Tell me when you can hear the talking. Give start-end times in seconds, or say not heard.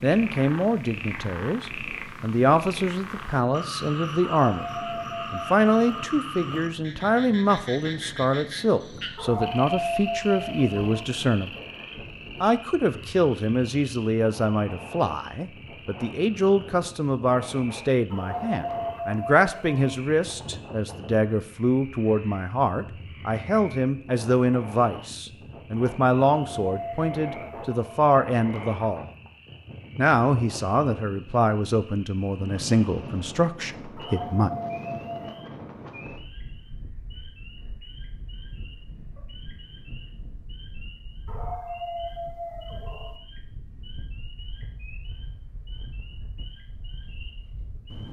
0.0-4.7, 5.3-11.5, 12.4-29.1, 29.9-34.5.